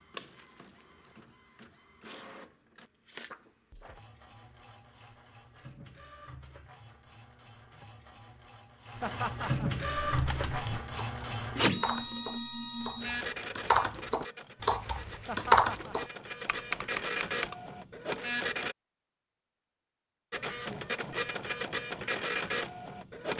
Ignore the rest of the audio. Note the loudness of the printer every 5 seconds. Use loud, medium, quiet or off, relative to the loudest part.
quiet, medium, loud, loud, loud.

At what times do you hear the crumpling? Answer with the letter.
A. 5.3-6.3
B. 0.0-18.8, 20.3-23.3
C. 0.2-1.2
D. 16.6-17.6
C.